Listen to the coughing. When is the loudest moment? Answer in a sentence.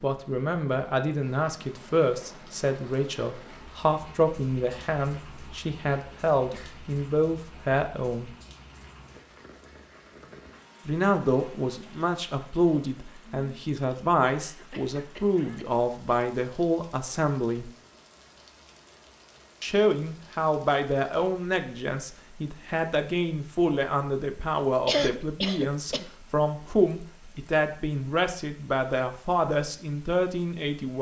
The loudest moment of the coughing is at 25 seconds.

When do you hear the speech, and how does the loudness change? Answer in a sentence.
The speech can be heard from 0.0 to 8.3 s, at a steady volume; from 10.8 to 17.7 s, at a steady volume; and from 19.6 to 30.9 s, at a steady volume.